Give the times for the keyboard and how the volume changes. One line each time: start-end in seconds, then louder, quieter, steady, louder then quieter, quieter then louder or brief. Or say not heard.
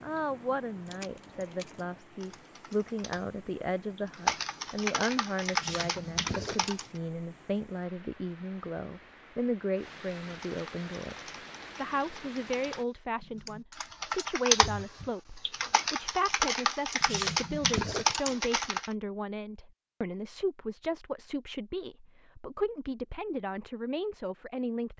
0.0-6.8 louder
10.3-18.9 louder.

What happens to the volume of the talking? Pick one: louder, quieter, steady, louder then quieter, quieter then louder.
steady.